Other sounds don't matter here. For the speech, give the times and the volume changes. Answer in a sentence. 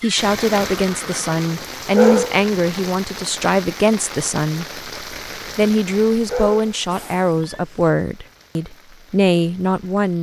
You can hear the speech from 0.0 to 10.1 s, at a steady volume.